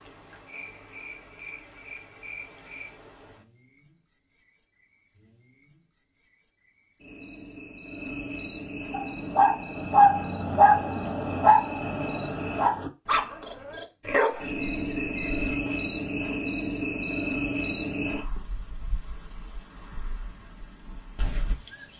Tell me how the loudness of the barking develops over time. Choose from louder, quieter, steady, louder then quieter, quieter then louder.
quieter.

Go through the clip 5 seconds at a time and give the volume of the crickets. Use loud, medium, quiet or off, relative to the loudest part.
quiet, medium, loud, loud, medium.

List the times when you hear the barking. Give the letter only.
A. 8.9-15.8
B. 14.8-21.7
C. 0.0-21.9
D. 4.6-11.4
A.